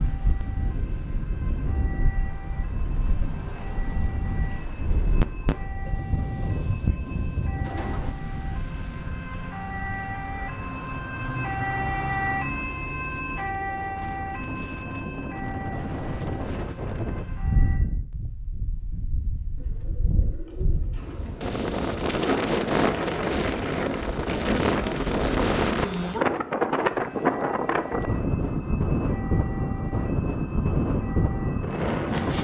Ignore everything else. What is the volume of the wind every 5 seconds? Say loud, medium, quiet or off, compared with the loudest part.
medium, medium, quiet, medium, loud, loud, loud.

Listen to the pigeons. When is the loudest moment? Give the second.
8 s.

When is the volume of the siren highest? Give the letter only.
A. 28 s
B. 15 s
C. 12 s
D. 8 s
C.